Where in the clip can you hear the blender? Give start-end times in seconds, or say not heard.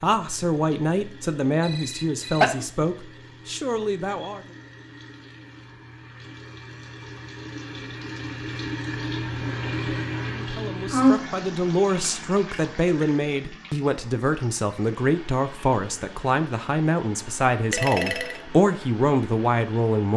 not heard.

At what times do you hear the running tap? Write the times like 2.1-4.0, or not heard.
0.0-20.1.